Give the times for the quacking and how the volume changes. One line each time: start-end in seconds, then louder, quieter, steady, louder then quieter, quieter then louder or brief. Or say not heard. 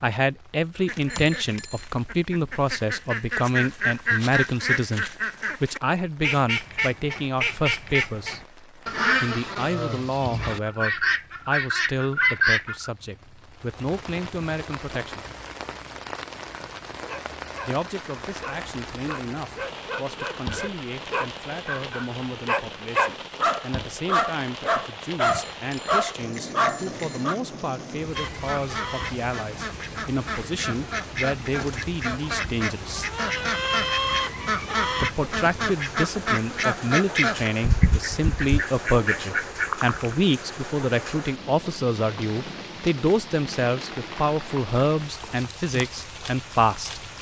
0.8-12.9 louder
28.1-40.1 louder.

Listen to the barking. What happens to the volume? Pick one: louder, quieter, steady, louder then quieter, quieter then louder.
louder.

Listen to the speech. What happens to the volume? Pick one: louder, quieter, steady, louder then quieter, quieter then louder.
quieter then louder.